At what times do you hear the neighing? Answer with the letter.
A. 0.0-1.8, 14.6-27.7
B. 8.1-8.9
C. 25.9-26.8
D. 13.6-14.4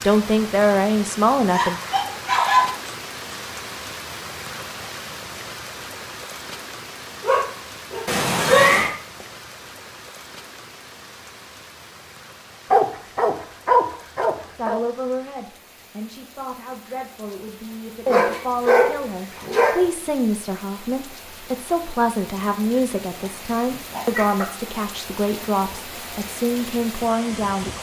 B.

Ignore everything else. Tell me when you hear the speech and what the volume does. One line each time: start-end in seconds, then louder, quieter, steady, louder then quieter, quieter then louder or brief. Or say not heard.
0.0-1.8 brief
14.6-27.7 louder.